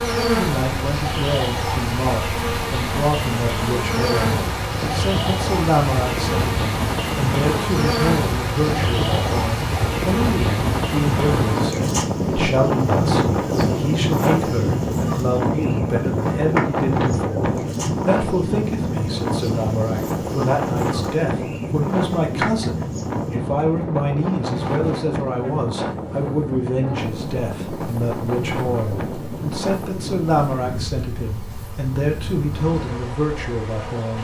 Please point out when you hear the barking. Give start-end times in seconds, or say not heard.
not heard.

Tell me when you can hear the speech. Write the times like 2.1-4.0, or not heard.
0.1-34.1.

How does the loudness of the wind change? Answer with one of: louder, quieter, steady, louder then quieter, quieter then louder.
louder then quieter.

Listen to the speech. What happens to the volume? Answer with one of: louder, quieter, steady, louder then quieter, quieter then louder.
steady.